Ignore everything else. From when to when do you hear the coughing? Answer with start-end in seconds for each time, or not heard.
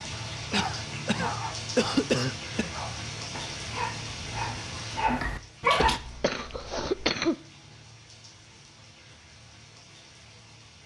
0.5-2.7, 5.8-7.3.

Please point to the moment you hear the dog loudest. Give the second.
6 s.